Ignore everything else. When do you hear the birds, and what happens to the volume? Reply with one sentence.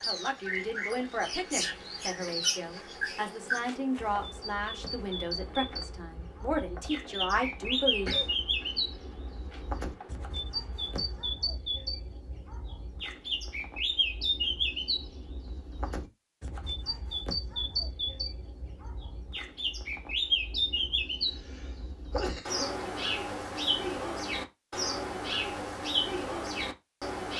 The birds can be heard from 0.0 to 27.3 s, at a steady volume.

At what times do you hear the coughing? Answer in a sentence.
You can hear the coughing from 7.6 to 8.3 s and from 21.3 to 22.9 s.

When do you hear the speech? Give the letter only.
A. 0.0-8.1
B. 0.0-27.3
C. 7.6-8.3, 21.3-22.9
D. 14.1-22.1
A.